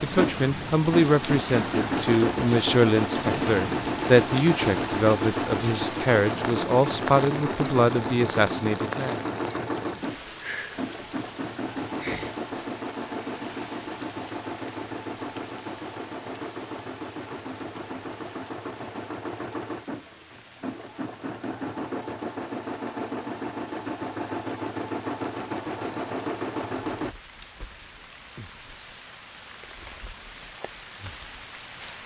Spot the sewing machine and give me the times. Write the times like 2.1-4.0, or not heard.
0.0-27.1.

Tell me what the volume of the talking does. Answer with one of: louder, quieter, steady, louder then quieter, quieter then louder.
steady.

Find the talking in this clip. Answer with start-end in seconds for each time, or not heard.
0.0-9.2.